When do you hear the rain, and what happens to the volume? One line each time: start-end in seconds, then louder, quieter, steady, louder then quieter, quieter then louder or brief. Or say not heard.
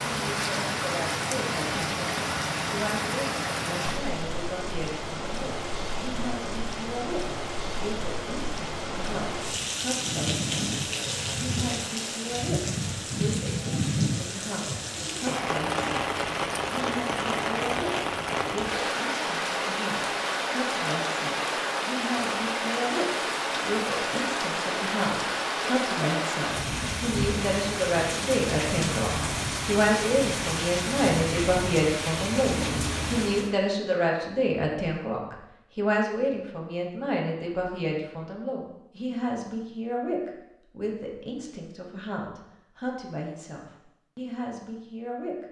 0.0-33.6 steady.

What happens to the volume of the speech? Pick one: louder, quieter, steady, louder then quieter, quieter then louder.
louder then quieter.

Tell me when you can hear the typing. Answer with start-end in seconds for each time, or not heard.
not heard.